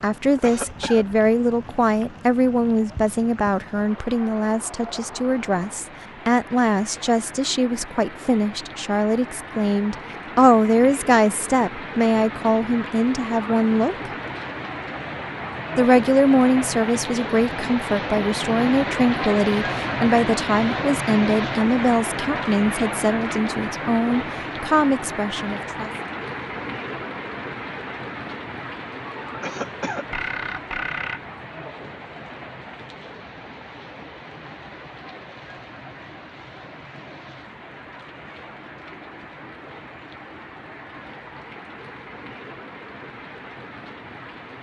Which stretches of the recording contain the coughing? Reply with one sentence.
The coughing can be heard from 0.4 to 1.1 s and from 29.4 to 30.2 s.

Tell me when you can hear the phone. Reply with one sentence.
You can hear the phone from 30.1 to 31.2 s.